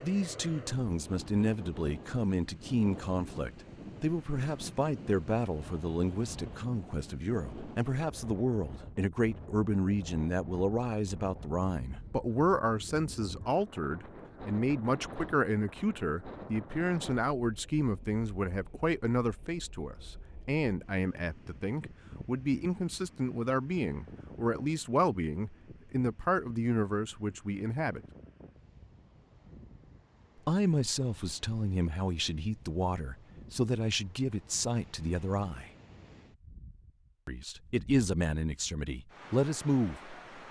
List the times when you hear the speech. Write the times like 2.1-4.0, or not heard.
0.0-28.0, 30.4-35.7, 37.2-40.1.